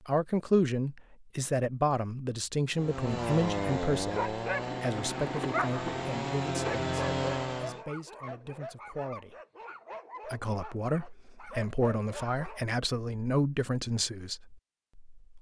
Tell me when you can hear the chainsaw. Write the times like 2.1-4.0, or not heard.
2.8-7.8.